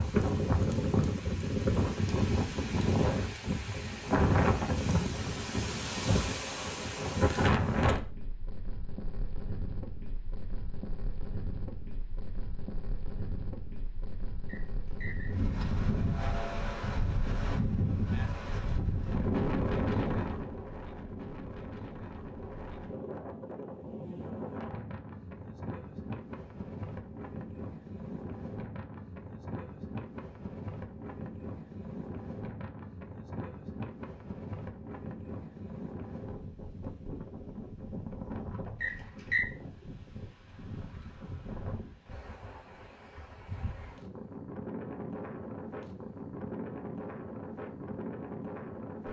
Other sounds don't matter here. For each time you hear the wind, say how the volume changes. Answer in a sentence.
You can hear the wind from 0.0 to 49.0 s, getting quieter.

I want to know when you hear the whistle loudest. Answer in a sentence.
The loudest moment of the whistle is at 39 seconds.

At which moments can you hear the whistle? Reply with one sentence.
The whistle can be heard from 14.4 to 15.3 s and from 38.8 to 39.5 s.